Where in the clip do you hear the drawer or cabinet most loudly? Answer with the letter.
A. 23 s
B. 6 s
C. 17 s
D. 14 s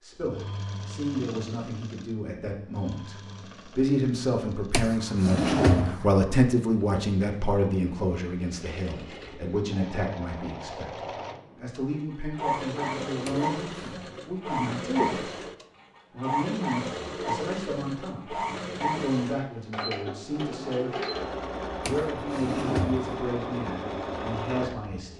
B.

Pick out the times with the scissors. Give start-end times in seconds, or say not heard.
not heard.